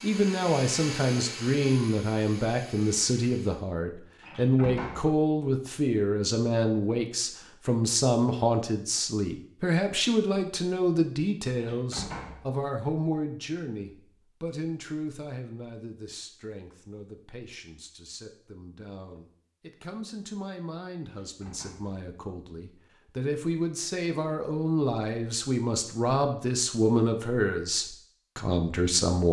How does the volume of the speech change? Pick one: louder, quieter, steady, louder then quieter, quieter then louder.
quieter then louder.